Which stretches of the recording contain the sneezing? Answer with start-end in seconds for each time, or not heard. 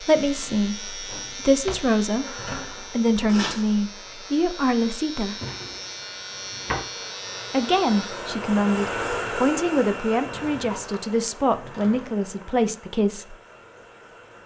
2.2-3.7.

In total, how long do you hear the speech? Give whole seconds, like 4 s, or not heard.
11 s.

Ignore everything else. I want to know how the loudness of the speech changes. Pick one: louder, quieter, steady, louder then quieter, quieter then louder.
steady.